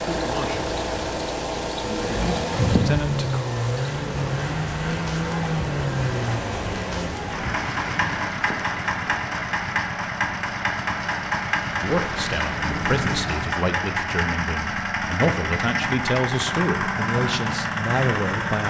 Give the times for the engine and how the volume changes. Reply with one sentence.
You can hear the engine from 0.0 to 18.6 s, at a steady volume.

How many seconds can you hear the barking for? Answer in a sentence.
The barking can't be heard in this clip.